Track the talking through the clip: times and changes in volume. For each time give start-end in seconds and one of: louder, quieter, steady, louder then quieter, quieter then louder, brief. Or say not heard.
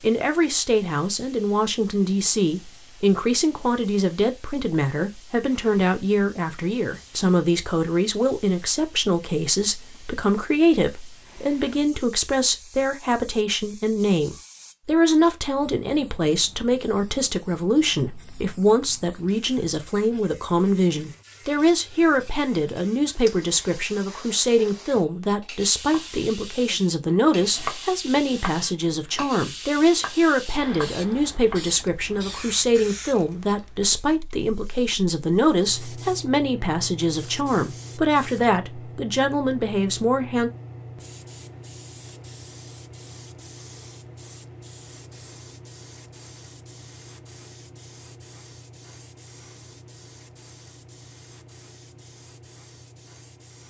0.0-40.5 steady.